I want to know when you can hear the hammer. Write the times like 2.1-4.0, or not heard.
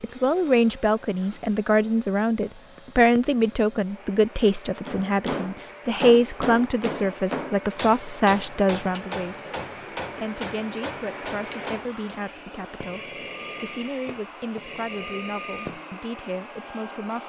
4.8-12.2.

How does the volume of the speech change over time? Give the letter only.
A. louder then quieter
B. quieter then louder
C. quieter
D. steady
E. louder
C.